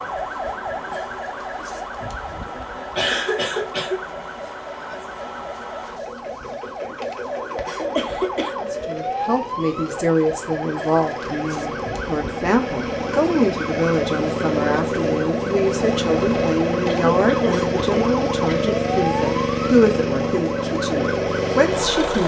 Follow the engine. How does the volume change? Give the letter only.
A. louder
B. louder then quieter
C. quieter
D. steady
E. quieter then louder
A.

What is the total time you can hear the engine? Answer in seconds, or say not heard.
22 s.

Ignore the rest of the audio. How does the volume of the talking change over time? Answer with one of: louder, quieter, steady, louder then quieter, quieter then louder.
steady.